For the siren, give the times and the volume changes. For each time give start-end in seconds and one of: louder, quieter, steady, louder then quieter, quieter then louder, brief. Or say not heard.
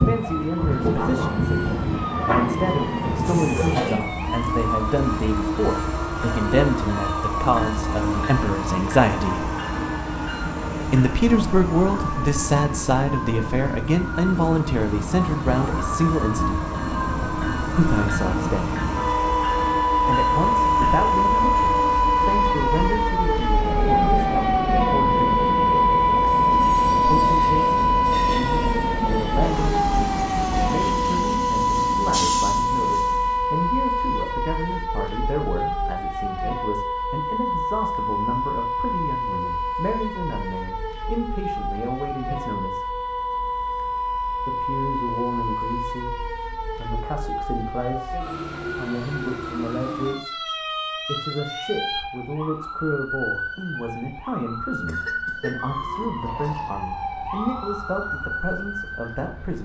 0.0-59.6 louder then quieter.